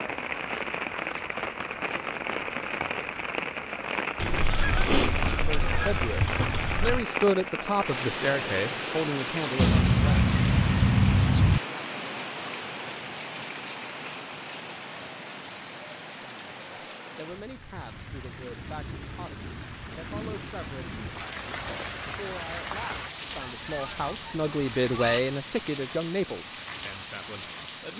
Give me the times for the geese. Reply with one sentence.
The geese can be heard from 4.2 to 7.0 s, from 9.6 to 11.6 s and from 23.2 to 25.2 s.